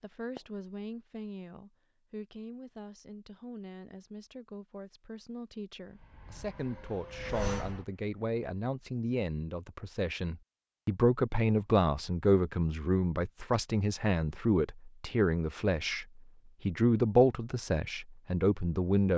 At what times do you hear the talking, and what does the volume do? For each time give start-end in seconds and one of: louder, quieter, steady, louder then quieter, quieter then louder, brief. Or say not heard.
0.0-19.1 louder.